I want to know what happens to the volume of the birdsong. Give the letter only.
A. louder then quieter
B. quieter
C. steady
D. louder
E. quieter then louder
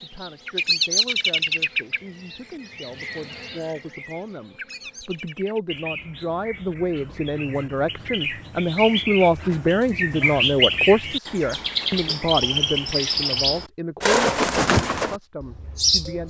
E.